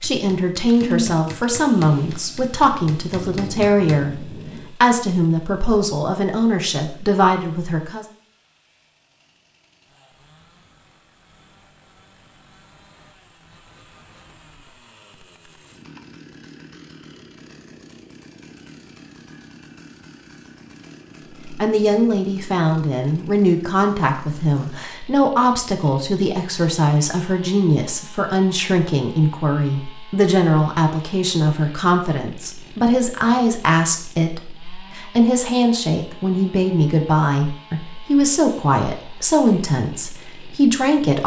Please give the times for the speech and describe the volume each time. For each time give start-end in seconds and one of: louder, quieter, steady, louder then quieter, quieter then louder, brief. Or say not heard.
0.0-8.1 steady
21.4-41.2 steady.